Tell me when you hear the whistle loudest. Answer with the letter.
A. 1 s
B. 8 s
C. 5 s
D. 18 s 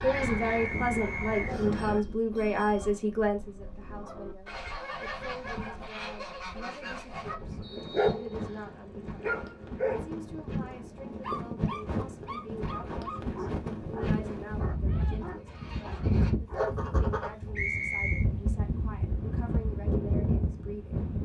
D.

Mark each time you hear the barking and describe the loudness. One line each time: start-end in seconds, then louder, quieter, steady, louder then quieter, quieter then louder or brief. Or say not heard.
7.2-16.7 quieter.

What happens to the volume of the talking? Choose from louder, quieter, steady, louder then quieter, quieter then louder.
quieter.